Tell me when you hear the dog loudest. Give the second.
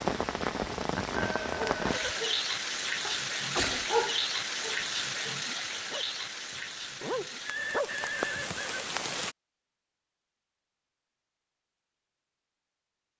4 s.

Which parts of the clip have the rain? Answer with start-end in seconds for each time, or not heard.
0.0-9.3.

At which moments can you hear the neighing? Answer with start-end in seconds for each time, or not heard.
1.1-2.2, 7.4-8.9.